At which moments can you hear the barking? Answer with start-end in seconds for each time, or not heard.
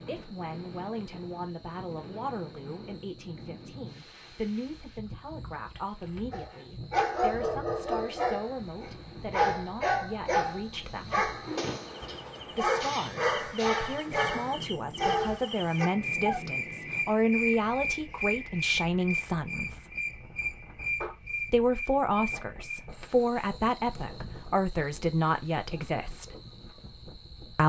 6.3-16.4.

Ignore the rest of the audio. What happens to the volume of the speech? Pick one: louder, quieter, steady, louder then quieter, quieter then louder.
louder.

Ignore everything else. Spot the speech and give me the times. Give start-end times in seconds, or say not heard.
0.1-11.3, 12.5-19.9, 21.4-26.4.